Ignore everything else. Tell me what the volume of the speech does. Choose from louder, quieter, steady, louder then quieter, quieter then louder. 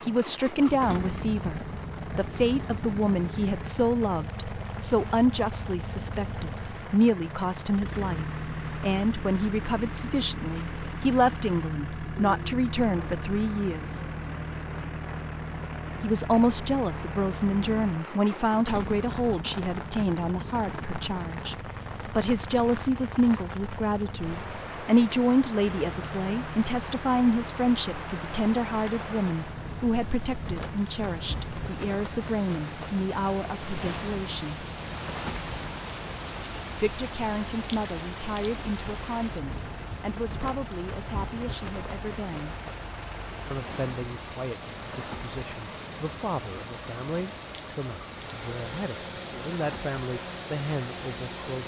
quieter.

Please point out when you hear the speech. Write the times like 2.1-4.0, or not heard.
0.0-14.0, 16.0-34.6, 36.8-42.5, 43.5-51.6.